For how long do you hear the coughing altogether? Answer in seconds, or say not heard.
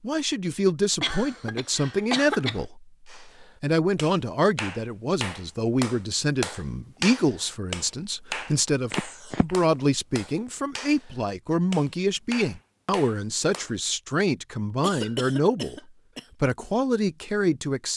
4 s.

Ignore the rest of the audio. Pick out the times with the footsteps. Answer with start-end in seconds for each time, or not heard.
not heard.